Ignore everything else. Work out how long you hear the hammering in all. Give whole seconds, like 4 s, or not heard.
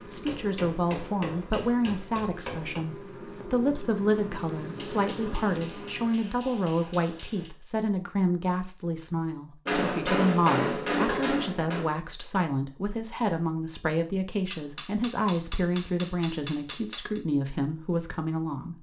10 s.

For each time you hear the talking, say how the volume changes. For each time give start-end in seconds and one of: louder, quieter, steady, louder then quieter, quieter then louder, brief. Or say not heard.
0.1-18.7 steady.